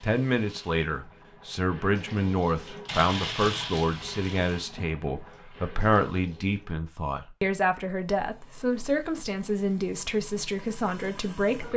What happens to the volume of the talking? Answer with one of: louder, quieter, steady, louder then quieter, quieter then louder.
steady.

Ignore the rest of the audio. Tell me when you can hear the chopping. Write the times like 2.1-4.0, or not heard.
not heard.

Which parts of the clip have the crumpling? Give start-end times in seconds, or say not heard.
2.9-4.3.